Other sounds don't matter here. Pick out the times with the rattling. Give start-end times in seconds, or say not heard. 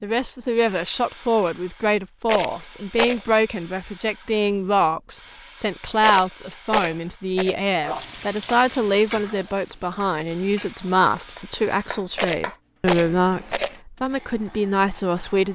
2.2-3.2, 6.0-7.5, 12.2-13.8.